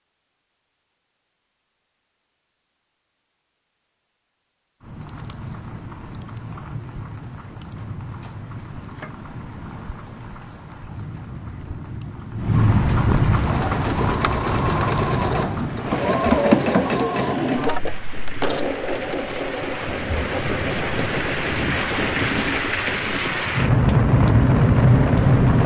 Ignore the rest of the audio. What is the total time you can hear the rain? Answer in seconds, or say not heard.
21 s.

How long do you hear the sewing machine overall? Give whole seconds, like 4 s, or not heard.
12 s.